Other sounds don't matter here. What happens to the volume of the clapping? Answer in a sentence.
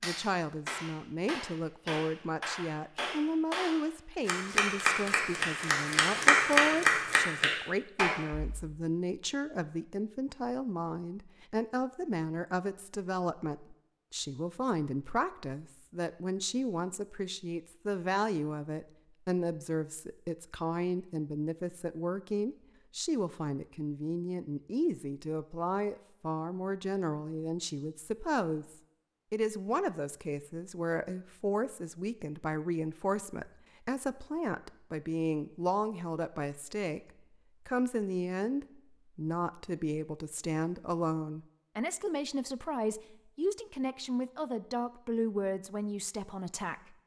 The volume of the clapping goes up.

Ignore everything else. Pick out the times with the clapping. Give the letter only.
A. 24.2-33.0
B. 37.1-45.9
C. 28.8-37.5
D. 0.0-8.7
D.